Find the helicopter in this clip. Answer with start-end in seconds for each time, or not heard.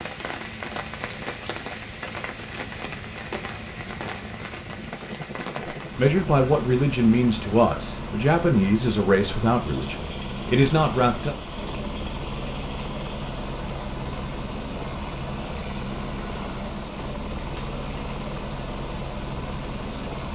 0.0-20.3.